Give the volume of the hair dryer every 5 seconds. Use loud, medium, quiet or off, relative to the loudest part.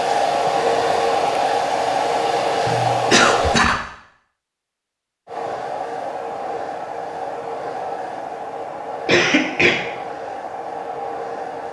loud, medium, medium.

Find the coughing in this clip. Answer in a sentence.
You can hear the coughing from 2.6 to 3.8 s and from 9.1 to 9.8 s.